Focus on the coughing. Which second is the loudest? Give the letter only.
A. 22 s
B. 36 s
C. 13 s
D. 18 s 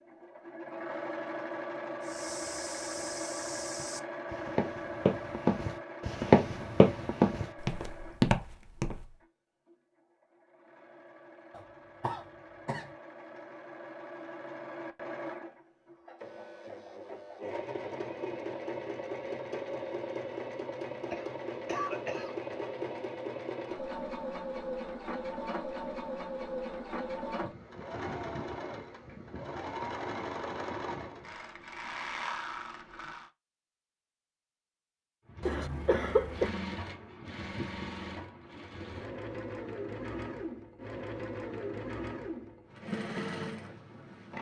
B.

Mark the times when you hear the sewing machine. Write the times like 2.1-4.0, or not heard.
0.0-33.3, 35.2-44.3.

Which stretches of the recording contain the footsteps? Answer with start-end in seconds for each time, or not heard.
2.0-9.2.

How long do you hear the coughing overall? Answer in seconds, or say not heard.
4 s.